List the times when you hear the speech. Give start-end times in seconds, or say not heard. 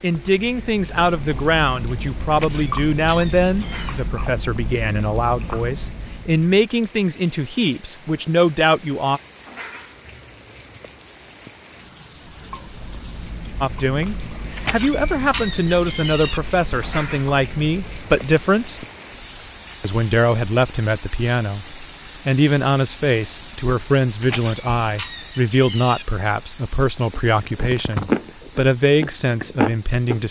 0.0-9.2, 13.6-18.9, 19.8-30.2.